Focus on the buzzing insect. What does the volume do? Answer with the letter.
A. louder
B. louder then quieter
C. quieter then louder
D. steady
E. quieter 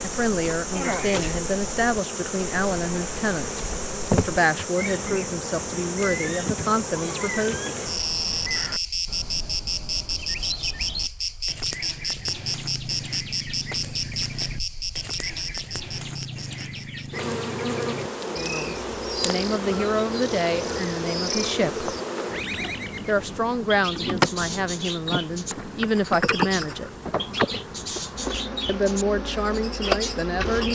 D.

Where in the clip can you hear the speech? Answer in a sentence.
The speech can be heard from 0.0 to 7.7 s, from 18.2 to 21.9 s, from 23.1 to 26.9 s and from 28.6 to 30.7 s.